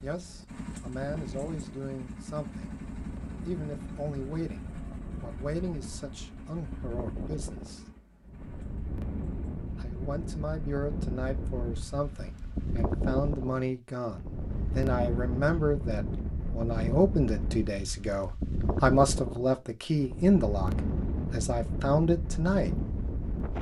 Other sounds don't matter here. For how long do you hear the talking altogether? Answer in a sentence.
The talking can be heard for 20 seconds in total.